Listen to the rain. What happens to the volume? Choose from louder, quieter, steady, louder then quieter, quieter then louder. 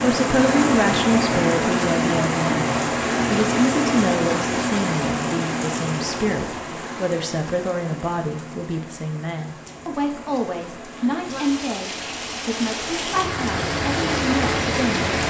quieter then louder.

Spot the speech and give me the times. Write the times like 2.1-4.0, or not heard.
0.0-15.1.